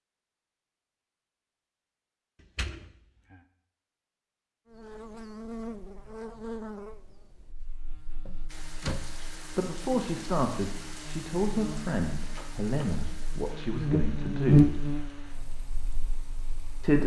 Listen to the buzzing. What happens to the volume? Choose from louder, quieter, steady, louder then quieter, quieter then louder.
quieter then louder.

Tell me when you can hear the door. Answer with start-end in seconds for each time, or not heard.
2.4-3.4, 8.2-9.2, 12.3-13.0.